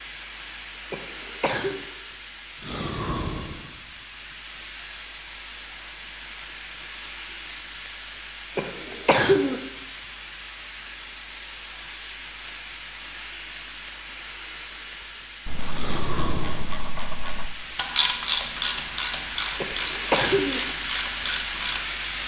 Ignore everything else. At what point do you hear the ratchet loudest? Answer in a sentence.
The volume of the ratchet peaks at 18 seconds.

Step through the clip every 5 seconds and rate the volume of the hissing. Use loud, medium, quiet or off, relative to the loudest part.
medium, medium, medium, medium, loud.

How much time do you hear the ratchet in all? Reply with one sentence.
The ratchet can be heard for 6 seconds in total.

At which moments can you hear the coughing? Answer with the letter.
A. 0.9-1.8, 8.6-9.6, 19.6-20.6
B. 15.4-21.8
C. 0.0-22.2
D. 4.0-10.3
A.